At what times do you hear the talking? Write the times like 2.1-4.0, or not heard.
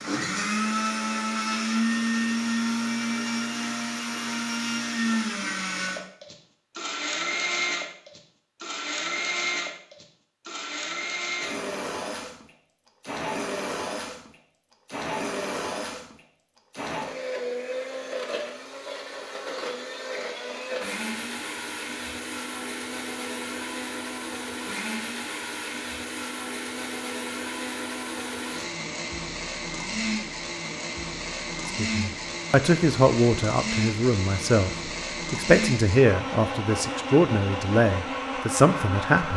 31.6-39.3.